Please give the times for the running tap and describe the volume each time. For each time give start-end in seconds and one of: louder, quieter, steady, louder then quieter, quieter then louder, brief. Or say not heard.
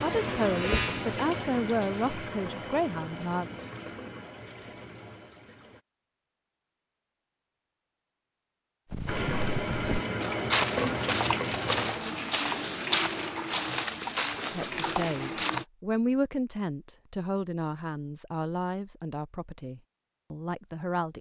0.0-5.8 quieter
9.1-15.7 quieter.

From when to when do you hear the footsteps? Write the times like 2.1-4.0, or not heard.
8.9-15.7.